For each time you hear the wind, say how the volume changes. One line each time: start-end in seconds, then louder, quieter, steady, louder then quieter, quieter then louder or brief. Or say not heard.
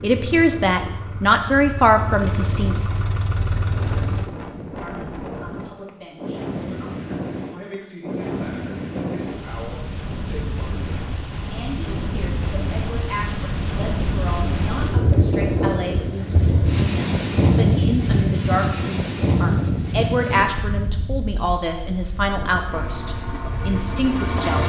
0.0-24.6 louder then quieter.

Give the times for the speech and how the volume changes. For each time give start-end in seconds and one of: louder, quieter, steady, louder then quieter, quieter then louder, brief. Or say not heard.
0.0-2.8 brief
4.8-24.6 louder.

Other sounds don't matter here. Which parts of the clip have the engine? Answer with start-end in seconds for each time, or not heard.
0.0-4.3, 22.6-24.6.